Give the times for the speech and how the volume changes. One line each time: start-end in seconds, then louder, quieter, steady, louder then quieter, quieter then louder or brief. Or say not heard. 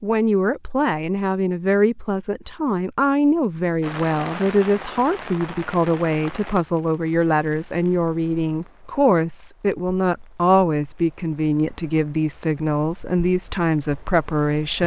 0.0-14.8 steady.